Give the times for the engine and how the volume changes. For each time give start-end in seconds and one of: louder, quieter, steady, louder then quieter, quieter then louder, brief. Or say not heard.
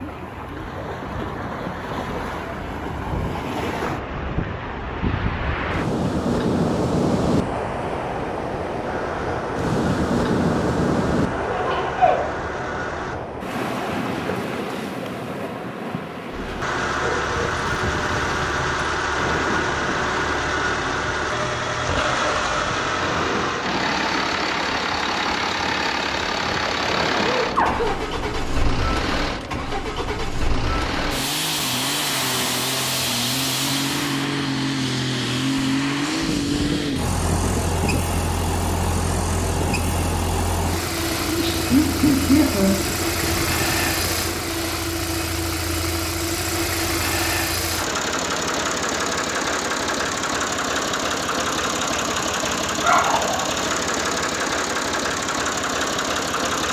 8.8-13.2 steady
16.3-56.6 steady.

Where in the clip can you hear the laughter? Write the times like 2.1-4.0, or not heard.
11.3-12.2, 27.2-27.9, 41.2-43.0.